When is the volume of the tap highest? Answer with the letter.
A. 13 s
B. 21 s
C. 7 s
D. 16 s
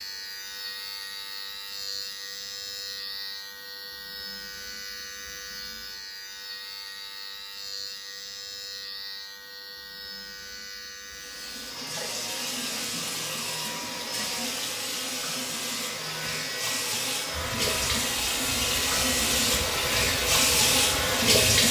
B.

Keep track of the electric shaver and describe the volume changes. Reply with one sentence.
The loudness of the electric shaver stays about the same.